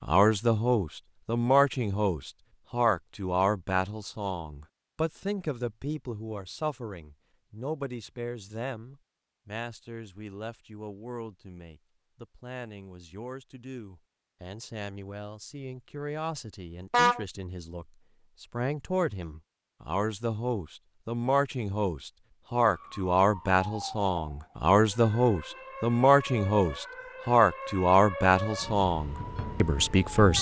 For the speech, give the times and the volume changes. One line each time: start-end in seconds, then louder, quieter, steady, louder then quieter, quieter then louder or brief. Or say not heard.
0.0-30.3 quieter then louder.